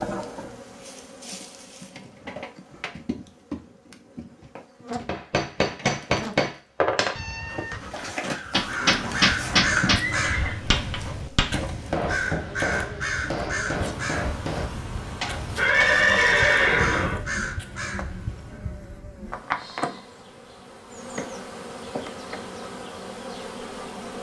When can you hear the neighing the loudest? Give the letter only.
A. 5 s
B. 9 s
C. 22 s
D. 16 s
D.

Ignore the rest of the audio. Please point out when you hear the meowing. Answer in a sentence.
The meowing can be heard from 7.2 to 8.1 s.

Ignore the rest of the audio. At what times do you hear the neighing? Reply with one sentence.
The neighing can be heard from 7.9 to 10.6 s and from 15.6 to 17.2 s.